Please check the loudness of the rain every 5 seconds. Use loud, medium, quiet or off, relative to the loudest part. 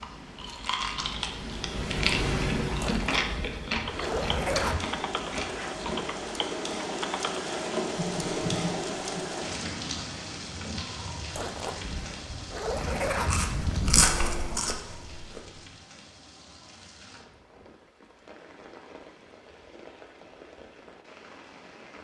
medium, loud, medium, quiet, quiet.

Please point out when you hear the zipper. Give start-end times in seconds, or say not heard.
2.8-4.8, 11.3-14.1.